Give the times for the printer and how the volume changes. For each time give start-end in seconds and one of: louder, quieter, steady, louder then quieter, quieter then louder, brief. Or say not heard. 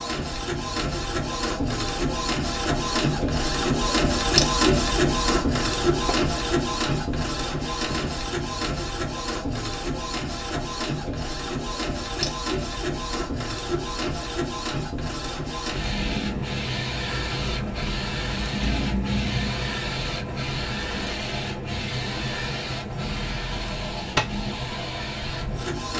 0.0-25.9 quieter.